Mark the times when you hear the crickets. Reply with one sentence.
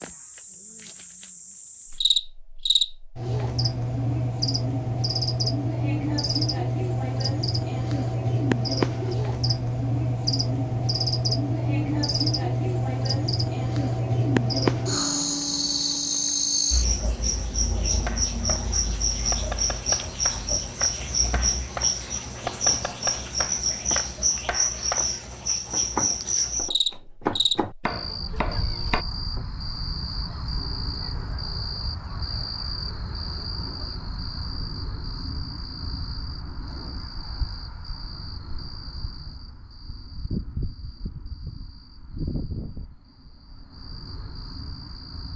You can hear the crickets from 0.0 to 45.3 s.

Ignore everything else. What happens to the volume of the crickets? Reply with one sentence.
The volume of the crickets goes down.